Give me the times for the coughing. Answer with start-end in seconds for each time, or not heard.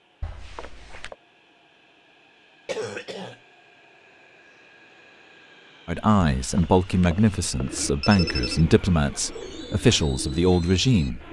2.6-3.4.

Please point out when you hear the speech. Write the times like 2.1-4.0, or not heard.
5.8-11.2.